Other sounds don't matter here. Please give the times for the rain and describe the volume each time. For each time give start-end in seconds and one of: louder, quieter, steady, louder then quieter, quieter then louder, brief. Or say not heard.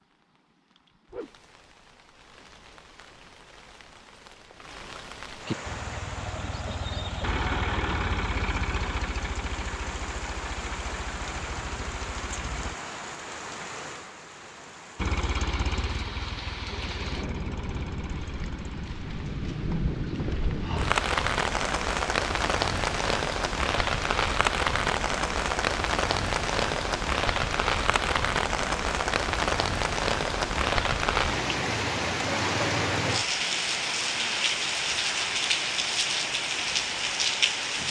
0.0-37.8 louder.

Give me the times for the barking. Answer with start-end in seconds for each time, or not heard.
not heard.